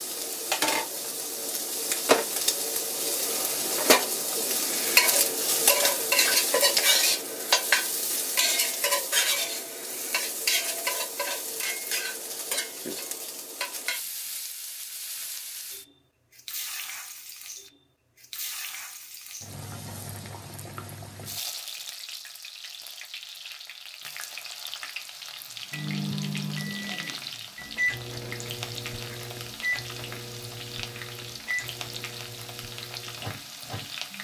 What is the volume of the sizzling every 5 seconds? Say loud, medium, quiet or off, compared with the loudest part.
loud, loud, medium, quiet, quiet, quiet, quiet.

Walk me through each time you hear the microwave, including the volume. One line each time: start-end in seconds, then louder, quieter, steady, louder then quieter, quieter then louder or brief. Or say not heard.
25.7-34.1 quieter.